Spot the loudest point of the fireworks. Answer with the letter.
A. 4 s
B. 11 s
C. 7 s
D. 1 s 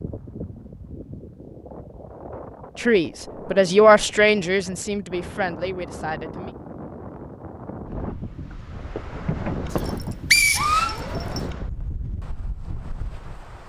B.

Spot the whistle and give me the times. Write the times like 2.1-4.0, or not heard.
9.8-11.4.